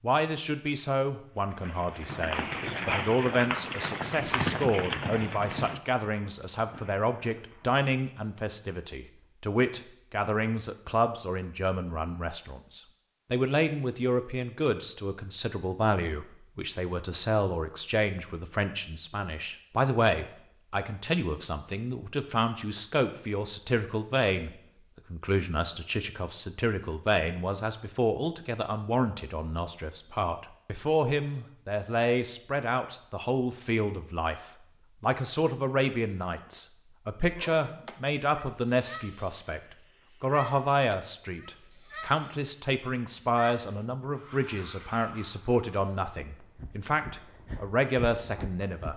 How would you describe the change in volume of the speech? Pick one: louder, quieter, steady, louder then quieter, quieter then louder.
steady.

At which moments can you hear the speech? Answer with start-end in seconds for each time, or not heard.
0.0-48.9.